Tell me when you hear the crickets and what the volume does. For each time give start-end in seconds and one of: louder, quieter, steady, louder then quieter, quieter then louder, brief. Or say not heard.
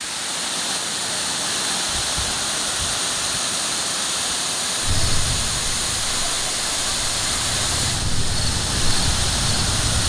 4.8-10.0 quieter then louder.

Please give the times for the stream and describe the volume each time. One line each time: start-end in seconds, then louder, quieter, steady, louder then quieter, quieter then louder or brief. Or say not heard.
0.0-10.0 steady.